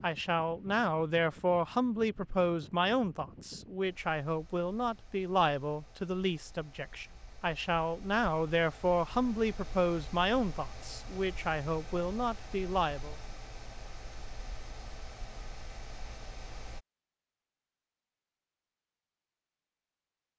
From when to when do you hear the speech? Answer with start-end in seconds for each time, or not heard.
0.0-13.2.